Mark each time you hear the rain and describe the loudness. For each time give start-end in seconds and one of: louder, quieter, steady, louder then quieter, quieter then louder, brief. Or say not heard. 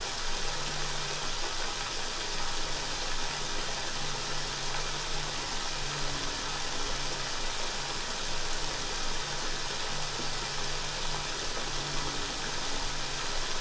0.0-13.5 steady.